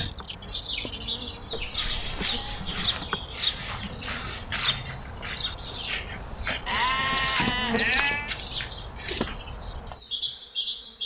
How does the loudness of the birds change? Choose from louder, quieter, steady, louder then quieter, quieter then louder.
steady.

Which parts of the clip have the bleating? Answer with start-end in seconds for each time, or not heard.
1.5-2.8, 6.7-8.3.